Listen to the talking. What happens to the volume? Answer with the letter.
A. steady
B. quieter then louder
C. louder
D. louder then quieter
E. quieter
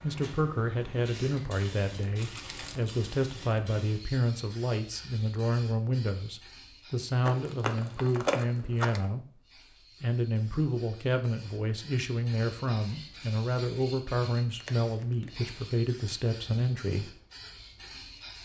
A.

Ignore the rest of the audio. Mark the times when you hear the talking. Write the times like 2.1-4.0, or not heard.
0.0-17.1.